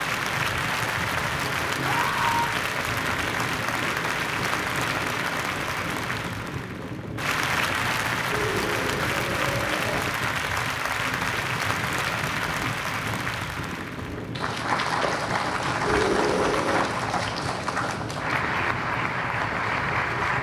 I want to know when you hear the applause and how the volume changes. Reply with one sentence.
The applause can be heard from 0.0 to 20.3 s, at a steady volume.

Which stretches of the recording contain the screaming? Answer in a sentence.
You can hear the screaming from 1.8 to 2.5 s, from 8.2 to 10.1 s and from 15.8 to 16.9 s.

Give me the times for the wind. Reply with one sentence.
The wind can be heard from 0.0 to 20.3 s.